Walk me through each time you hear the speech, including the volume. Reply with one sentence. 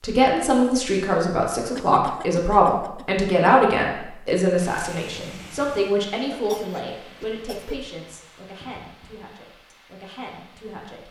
You can hear the speech from 0.0 to 11.0 s, getting quieter.